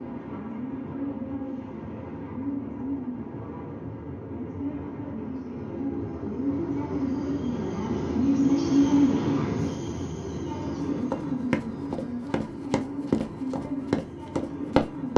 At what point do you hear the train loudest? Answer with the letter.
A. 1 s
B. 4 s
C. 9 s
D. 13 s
C.